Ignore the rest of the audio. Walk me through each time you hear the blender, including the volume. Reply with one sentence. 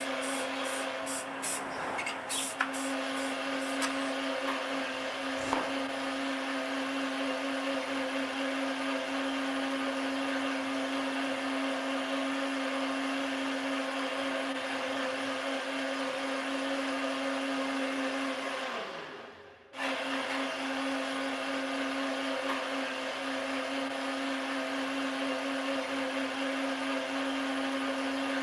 The blender can be heard from 0.0 to 28.3 s, at a steady volume.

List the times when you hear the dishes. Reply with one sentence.
You can't hear the dishes here.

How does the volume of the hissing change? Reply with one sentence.
The volume of the hissing goes up, then down.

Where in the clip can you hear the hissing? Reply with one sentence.
The hissing can be heard from 0.0 to 4.1 s.